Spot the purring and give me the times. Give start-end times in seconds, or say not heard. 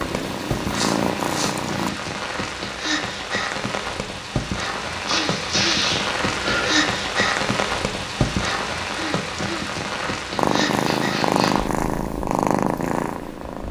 0.0-1.9, 10.3-13.6.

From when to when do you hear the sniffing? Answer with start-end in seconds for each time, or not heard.
0.8-1.6, 5.0-6.9, 9.9-11.6.